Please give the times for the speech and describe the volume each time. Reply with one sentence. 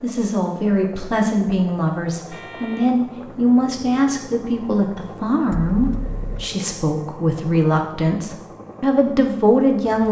You can hear the speech from 0.0 to 10.0 s, at a steady volume.